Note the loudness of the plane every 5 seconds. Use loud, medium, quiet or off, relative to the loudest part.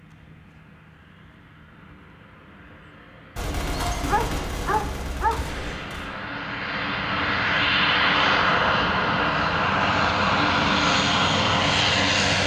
quiet, loud, loud.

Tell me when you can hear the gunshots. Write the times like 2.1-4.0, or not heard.
3.4-6.1.